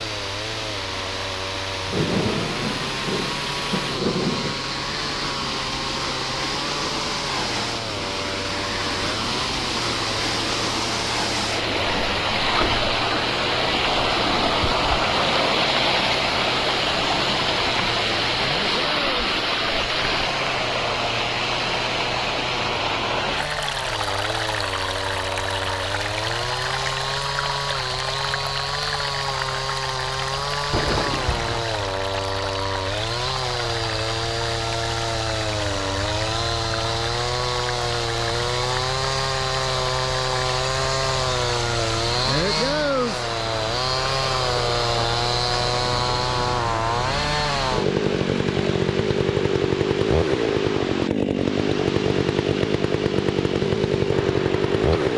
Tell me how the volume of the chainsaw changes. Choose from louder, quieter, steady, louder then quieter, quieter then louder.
louder.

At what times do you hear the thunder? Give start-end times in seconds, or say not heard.
1.9-4.6, 30.7-31.6.